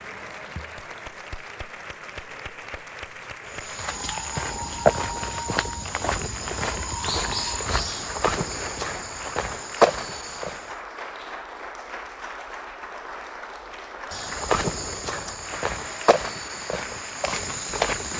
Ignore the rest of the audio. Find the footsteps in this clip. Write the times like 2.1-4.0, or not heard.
3.5-10.7, 14.1-18.1.